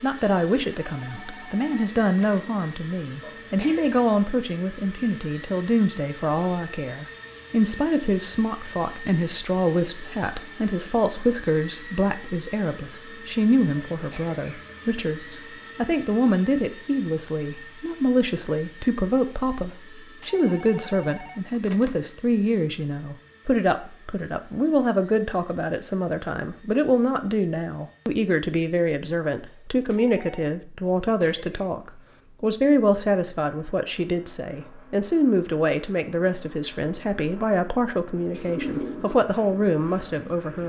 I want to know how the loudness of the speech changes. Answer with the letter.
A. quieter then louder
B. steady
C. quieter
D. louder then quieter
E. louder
B.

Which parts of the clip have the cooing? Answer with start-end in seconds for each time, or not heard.
38.3-40.6.